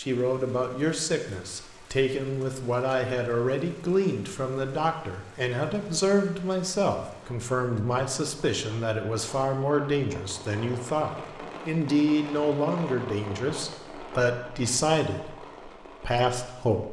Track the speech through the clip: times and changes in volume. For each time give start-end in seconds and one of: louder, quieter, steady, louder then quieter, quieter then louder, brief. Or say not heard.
0.0-16.8 steady.